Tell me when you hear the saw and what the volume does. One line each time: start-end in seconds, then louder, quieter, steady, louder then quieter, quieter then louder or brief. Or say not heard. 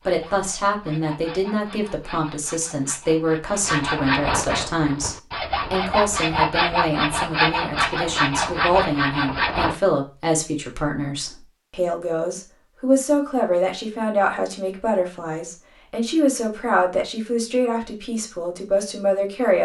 0.0-9.8 louder.